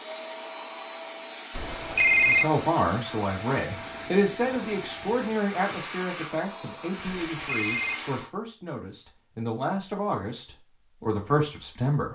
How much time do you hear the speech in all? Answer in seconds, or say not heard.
10 s.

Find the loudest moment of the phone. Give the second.
2 s.